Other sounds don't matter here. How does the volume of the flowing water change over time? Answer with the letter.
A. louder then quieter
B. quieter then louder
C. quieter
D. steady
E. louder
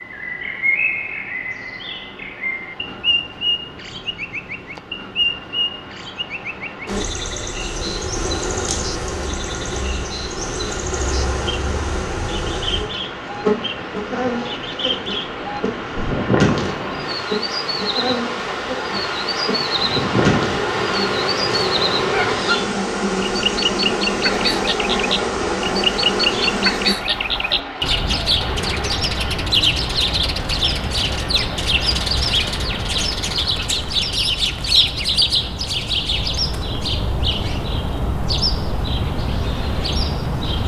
A.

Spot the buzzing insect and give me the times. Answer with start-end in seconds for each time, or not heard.
6.8-26.9.